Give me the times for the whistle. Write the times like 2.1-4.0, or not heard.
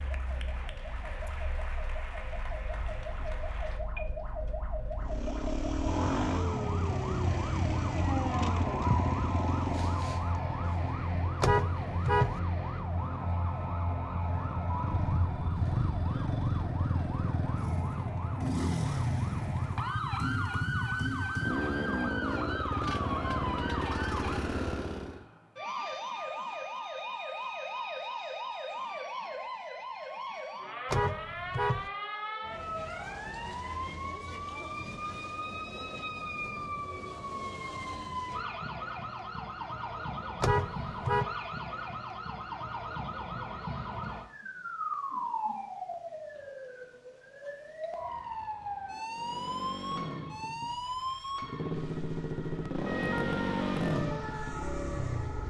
not heard.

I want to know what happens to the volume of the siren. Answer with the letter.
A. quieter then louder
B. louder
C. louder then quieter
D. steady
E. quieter
D.